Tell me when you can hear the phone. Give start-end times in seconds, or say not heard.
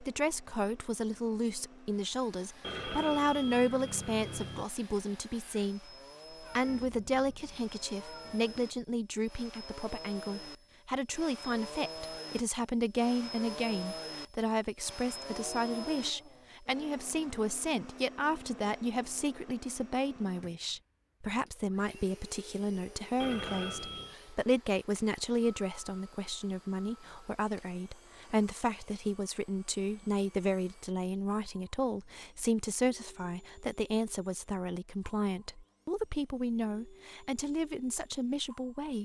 2.6-4.7, 23.2-24.1.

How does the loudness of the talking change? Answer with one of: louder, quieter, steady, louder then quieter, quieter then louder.
steady.